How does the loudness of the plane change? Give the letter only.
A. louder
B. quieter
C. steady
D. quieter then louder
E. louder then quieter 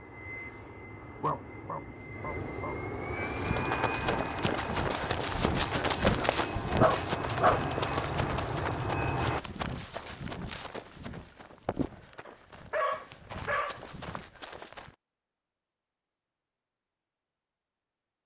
A.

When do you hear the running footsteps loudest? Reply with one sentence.
The loudest moment of the running footsteps is at 6 seconds.